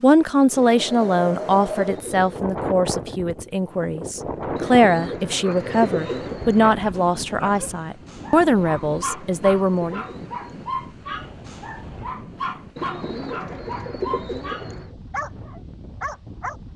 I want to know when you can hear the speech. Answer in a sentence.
You can hear the speech from 0.0 to 10.1 s.